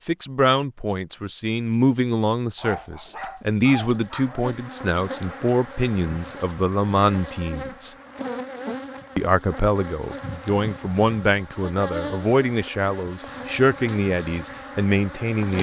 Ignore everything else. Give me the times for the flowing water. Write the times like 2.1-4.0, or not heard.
not heard.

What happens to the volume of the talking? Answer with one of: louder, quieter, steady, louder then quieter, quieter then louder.
steady.